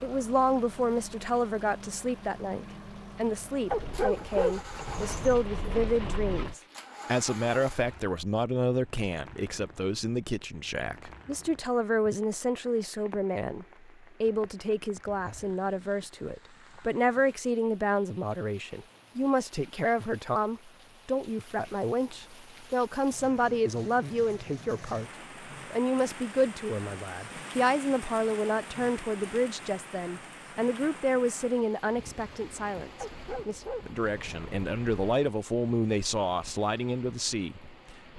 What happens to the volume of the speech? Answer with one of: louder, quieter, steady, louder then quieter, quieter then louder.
steady.